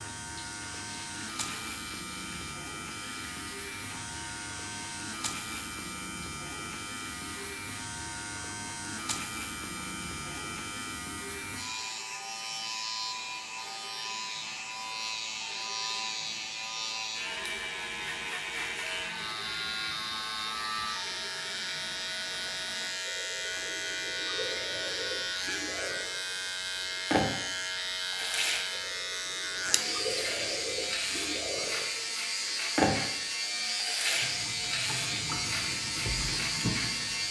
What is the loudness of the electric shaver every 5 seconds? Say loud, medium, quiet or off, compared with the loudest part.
medium, medium, medium, loud, loud, loud, loud, loud.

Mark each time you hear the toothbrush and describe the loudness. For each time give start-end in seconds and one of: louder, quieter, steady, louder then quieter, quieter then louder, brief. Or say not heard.
not heard.